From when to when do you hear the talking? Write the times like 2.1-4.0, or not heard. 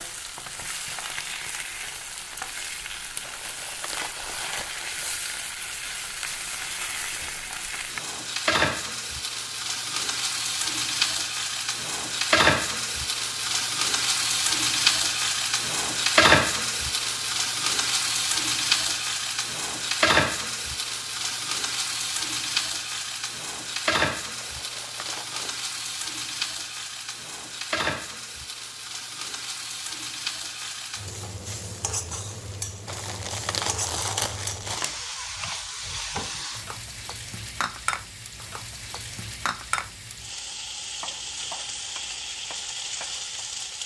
not heard.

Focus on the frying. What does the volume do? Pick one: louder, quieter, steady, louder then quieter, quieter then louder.
louder then quieter.